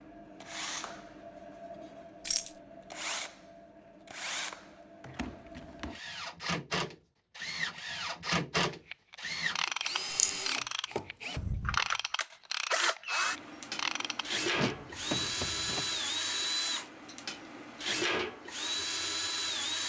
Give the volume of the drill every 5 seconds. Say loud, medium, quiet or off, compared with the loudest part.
medium, loud, loud, loud.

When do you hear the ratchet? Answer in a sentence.
The ratchet can be heard from 8.7 to 15.9 s.